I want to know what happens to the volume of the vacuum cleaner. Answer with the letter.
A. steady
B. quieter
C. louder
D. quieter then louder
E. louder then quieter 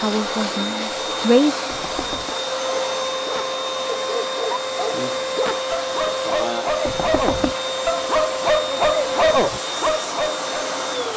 A.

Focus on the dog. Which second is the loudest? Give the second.
9 s.